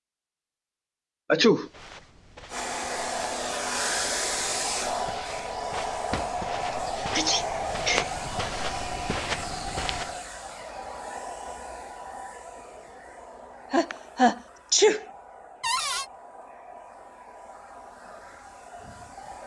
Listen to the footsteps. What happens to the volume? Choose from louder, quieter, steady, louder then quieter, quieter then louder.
louder.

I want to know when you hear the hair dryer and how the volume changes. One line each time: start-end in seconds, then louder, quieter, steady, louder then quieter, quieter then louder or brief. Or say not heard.
2.5-19.4 quieter.